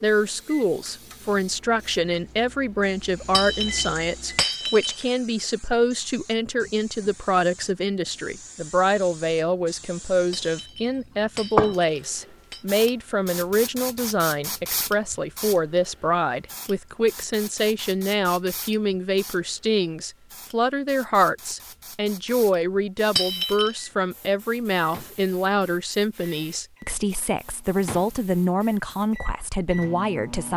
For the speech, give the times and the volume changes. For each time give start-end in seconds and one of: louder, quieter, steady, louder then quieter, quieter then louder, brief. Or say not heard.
0.0-30.5 steady.